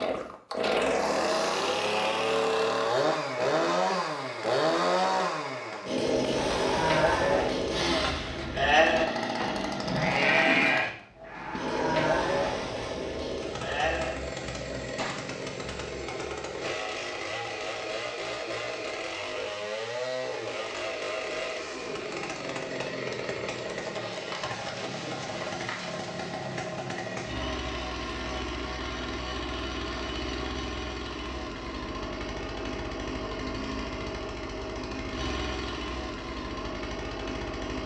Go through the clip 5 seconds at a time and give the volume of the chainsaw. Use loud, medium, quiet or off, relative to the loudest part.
loud, loud, medium, medium, medium, medium, medium, medium.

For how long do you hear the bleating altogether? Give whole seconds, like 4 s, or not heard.
8 s.